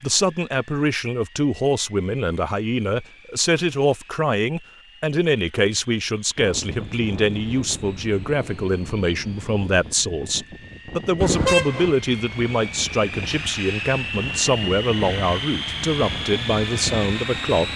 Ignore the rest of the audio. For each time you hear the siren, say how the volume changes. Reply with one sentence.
You can't hear the siren here.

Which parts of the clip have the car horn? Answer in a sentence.
You can hear the car horn from 11.2 to 11.9 s.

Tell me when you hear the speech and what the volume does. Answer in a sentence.
The speech can be heard from 0.0 to 17.7 s, at a steady volume.